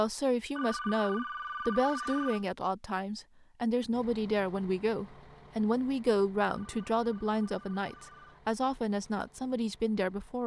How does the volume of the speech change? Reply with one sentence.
The loudness of the speech stays about the same.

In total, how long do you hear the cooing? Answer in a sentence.
The cooing can't be heard in this clip.